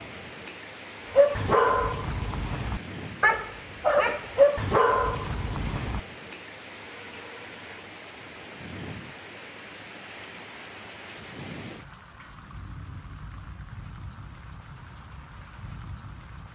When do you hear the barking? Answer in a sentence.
The barking can be heard from 1.1 to 6.0 s.